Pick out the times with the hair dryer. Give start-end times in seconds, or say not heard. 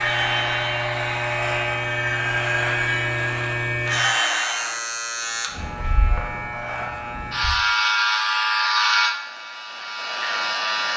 0.0-4.8.